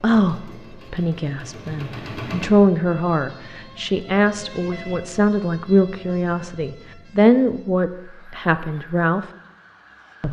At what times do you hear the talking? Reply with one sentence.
The talking can be heard from 0.0 to 9.2 s.